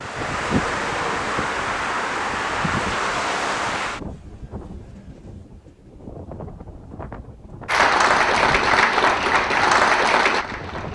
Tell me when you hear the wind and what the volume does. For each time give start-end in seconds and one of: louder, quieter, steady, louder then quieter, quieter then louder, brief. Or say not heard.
0.0-10.9 quieter.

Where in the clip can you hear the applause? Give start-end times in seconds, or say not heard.
7.7-10.9.